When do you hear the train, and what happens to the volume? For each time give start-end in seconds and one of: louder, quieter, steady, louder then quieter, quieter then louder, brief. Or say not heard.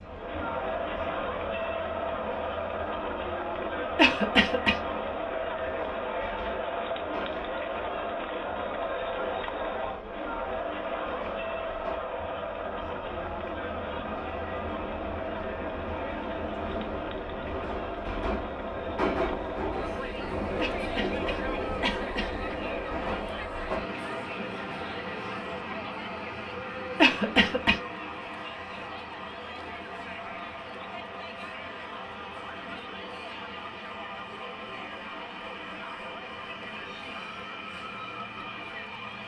0.0-39.2 louder then quieter.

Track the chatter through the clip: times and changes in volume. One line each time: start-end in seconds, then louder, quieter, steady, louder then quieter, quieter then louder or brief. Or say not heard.
0.0-39.2 quieter.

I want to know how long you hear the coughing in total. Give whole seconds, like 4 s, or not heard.
4 s.